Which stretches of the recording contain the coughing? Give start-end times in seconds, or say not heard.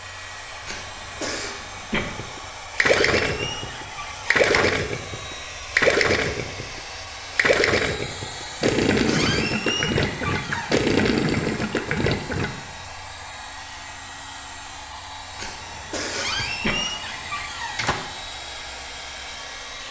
0.7-2.0, 15.3-16.8.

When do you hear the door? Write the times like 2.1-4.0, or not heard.
2.8-4.8, 9.1-10.8, 16.1-17.9.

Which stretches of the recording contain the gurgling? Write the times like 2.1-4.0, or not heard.
1.9-12.6.